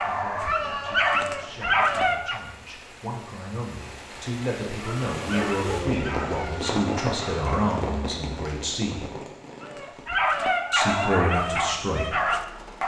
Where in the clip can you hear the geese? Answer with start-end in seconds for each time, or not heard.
not heard.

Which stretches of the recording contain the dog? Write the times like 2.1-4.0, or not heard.
0.0-2.4, 4.8-7.7, 9.6-12.8.